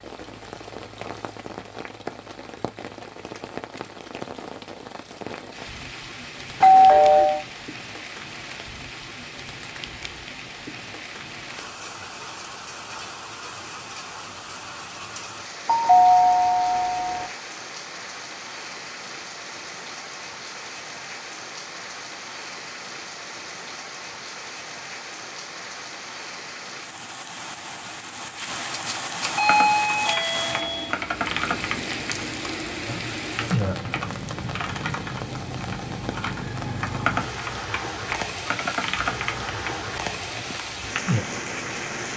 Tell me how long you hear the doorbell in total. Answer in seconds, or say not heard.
5 s.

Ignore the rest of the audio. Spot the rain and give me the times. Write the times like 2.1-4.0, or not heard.
0.0-42.1.